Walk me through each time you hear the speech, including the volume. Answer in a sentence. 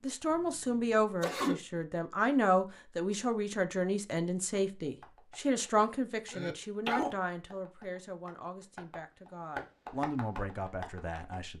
The speech can be heard from 0.0 to 11.5 s, getting quieter.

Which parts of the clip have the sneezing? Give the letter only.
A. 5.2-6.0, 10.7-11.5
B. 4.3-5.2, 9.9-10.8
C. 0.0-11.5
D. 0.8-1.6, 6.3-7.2
D.